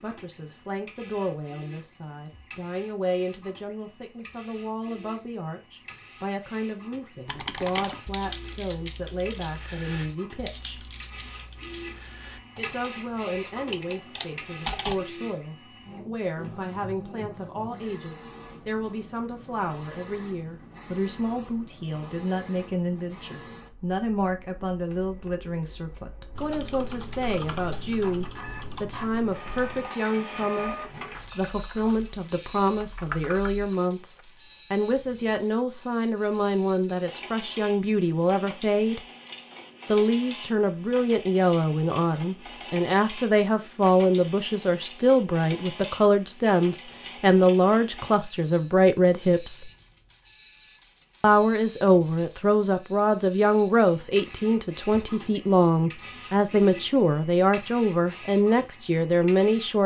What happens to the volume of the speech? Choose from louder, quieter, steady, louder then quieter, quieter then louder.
louder.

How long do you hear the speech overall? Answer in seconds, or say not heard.
56 s.